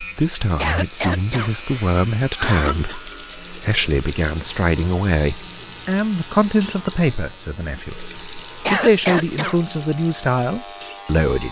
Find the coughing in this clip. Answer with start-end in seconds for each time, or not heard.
0.6-3.0, 8.7-9.6.